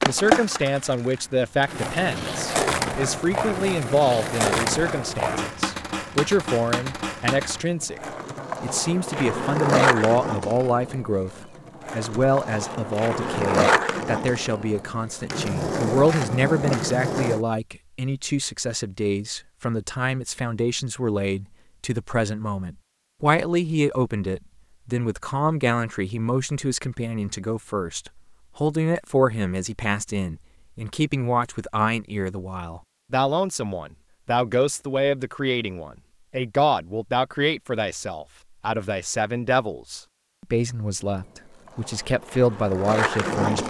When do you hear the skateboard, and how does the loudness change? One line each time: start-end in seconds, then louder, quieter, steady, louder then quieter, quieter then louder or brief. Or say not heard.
0.0-17.4 steady
41.0-43.6 brief.